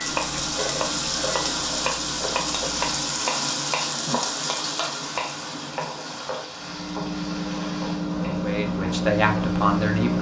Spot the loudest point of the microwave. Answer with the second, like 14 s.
10 s.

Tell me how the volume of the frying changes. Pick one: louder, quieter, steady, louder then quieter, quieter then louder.
quieter.